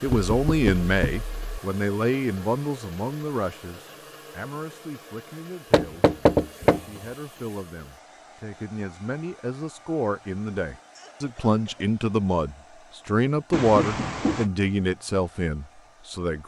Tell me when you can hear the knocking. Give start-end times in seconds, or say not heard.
0.1-1.6, 5.7-6.8, 13.5-14.5.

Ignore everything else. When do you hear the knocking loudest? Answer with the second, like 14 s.
6 s.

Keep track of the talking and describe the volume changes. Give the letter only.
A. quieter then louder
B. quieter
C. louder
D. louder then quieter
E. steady
A.